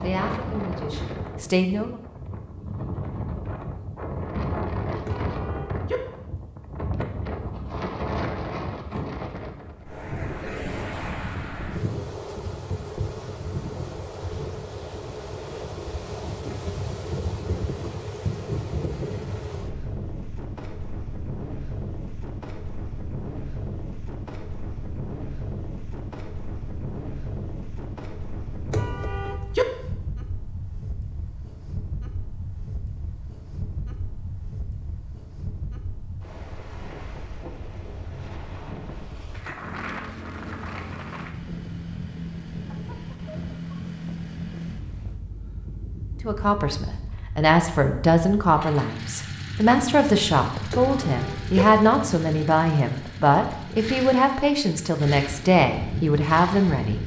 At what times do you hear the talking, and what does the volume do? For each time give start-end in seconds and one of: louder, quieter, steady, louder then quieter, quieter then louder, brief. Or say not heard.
0.0-1.9 brief
46.2-57.0 steady.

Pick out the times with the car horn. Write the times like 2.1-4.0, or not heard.
5.0-6.0, 28.7-29.6, 50.7-51.6.